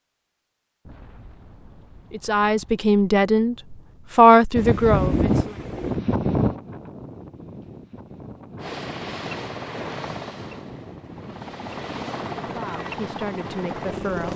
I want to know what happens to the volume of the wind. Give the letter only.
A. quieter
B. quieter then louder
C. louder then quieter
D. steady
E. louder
A.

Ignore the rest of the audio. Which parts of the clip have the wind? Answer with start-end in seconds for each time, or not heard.
4.5-14.3.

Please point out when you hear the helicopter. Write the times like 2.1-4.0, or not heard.
8.6-14.3.